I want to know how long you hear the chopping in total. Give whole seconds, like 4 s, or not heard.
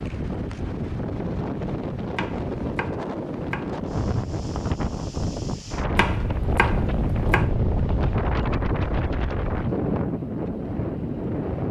3 s.